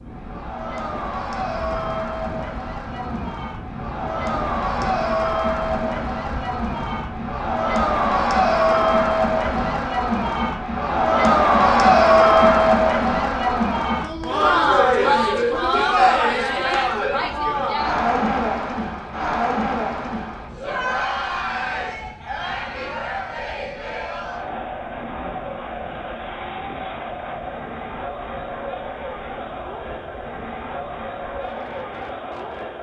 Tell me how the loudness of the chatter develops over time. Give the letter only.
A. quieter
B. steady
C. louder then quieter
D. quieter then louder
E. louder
C.